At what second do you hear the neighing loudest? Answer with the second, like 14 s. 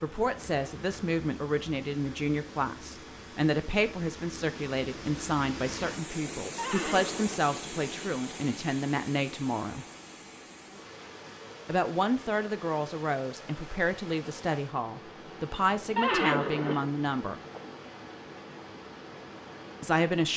16 s.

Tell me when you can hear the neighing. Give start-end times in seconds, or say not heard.
6.5-7.3, 15.9-17.6.